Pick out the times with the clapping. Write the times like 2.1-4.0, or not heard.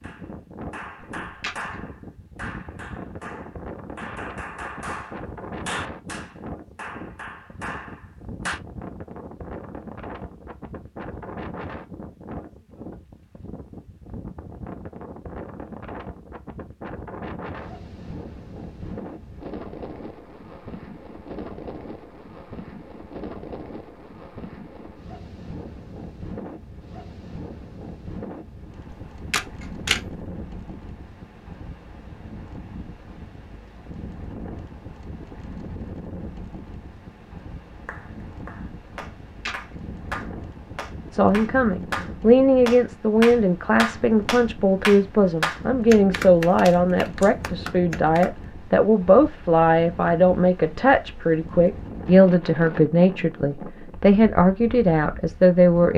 0.0-8.6, 37.9-48.5.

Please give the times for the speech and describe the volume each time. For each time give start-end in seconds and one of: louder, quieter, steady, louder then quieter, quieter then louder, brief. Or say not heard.
41.1-55.9 steady.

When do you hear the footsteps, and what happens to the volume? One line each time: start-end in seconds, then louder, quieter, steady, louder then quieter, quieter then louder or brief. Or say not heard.
not heard.